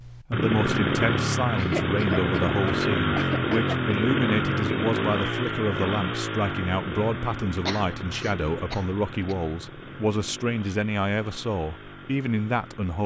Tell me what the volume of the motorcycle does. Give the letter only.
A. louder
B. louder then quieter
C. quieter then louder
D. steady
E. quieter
E.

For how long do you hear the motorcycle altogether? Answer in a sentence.
The motorcycle can be heard for 13 seconds in total.